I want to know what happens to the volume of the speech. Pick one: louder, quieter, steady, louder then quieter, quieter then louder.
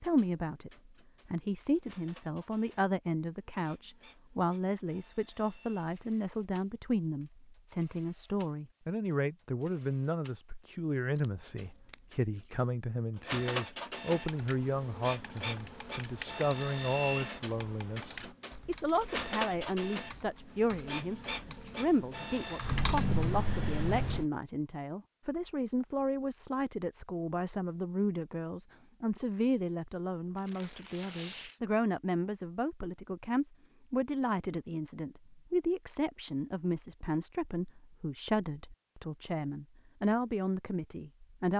steady.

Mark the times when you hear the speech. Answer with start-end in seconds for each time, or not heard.
0.0-41.5.